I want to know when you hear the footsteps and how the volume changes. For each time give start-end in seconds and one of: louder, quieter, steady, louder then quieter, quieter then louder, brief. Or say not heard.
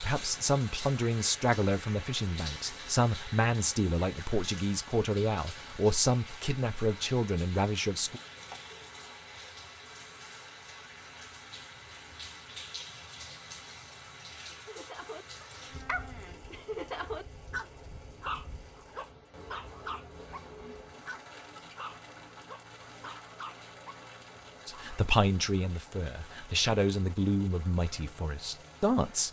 not heard.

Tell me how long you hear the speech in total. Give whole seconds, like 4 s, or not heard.
13 s.